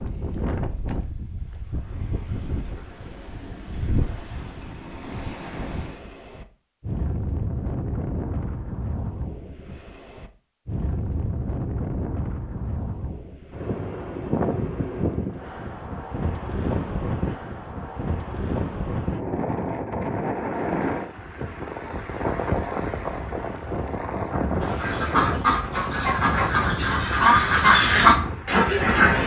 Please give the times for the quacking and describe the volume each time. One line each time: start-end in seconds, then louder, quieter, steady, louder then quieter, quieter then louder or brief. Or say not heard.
24.6-29.2 louder.